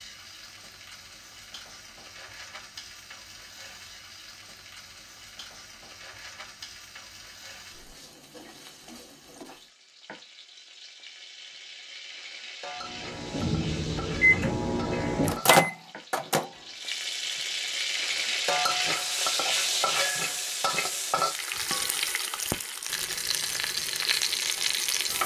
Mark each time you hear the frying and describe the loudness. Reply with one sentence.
The frying can be heard from 0.0 to 25.2 s, getting louder.